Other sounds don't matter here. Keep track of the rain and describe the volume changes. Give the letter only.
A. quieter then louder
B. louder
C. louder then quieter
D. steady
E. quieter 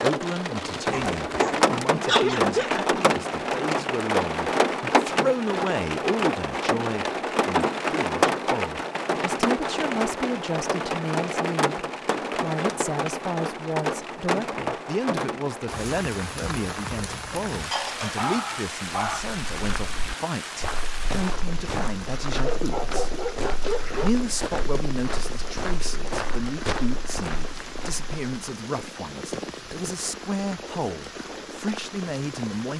E.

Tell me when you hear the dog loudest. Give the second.
2 s.